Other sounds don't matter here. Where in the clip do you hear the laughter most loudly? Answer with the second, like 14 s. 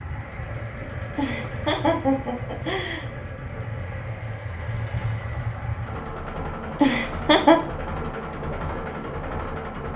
7 s.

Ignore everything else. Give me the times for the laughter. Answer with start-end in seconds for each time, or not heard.
1.1-3.0, 6.8-7.6.